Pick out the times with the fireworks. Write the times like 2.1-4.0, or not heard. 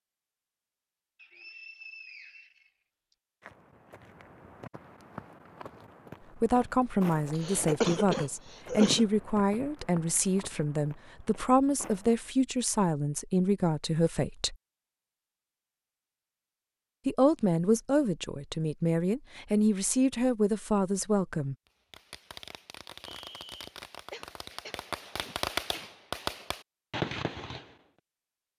21.6-27.8.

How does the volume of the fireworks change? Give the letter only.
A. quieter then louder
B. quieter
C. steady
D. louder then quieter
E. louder
E.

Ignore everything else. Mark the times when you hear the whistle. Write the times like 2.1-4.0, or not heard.
1.1-3.1, 23.1-23.7.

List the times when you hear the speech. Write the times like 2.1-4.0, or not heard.
6.4-14.6, 17.1-21.6.